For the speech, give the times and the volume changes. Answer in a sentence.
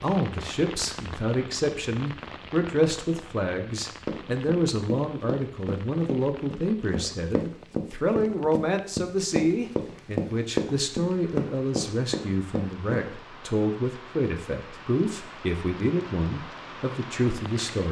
The speech can be heard from 0.0 to 17.8 s, at a steady volume.